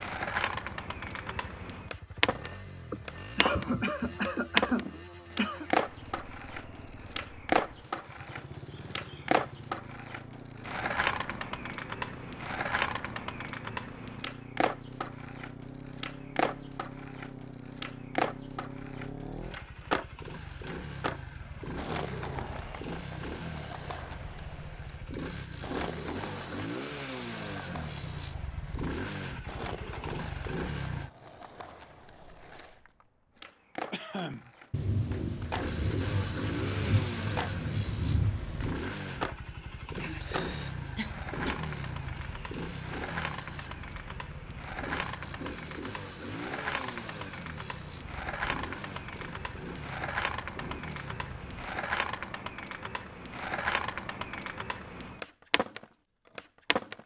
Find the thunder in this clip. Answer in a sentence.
The thunder can be heard from 34.7 to 38.8 s.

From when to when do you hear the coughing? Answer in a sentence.
You can hear the coughing from 2.9 to 5.7 s, from 33.9 to 34.5 s and from 40.0 to 41.5 s.